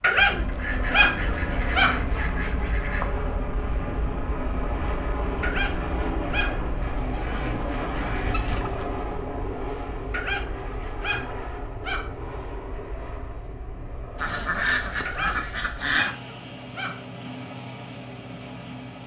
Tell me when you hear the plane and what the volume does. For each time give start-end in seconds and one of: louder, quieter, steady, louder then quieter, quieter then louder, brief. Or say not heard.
0.0-19.0 quieter.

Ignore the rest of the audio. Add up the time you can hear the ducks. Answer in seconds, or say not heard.
7 s.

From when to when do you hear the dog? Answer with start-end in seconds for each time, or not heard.
0.0-2.0, 5.4-6.8, 10.1-12.1, 15.1-17.1.